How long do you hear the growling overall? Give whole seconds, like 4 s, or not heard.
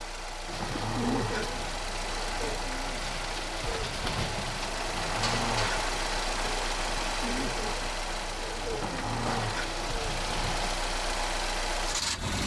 5 s.